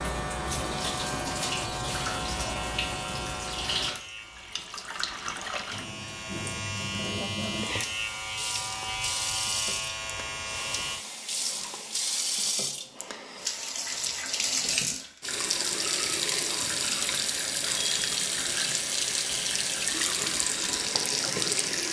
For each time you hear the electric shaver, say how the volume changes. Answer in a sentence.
The electric shaver can be heard from 0.0 to 11.1 s, getting quieter then louder.